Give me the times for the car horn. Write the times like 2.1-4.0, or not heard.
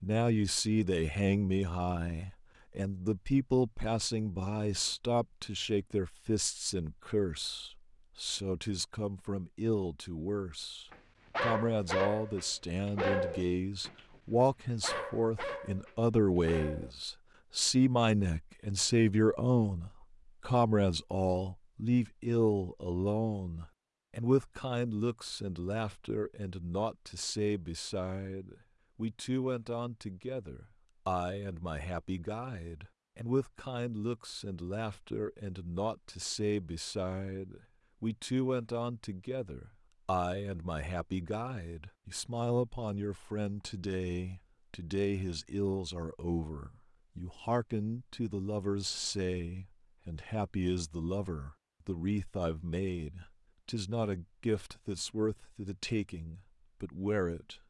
not heard.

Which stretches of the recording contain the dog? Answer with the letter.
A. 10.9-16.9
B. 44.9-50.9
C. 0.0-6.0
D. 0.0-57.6
A.